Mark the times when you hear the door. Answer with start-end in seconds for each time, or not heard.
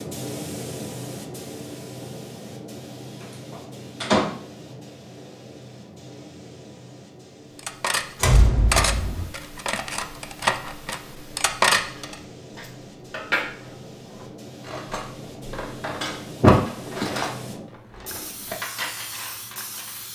3.5-4.2, 8.2-9.2, 16.4-17.1.